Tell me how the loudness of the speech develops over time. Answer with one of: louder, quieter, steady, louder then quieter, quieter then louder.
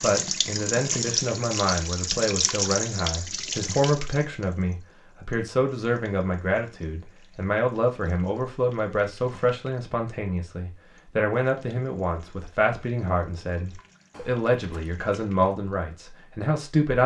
steady.